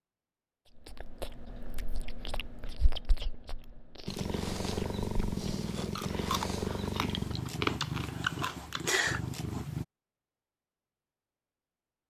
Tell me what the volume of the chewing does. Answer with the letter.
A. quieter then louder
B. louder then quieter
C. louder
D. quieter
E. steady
C.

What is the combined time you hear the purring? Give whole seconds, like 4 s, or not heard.
6 s.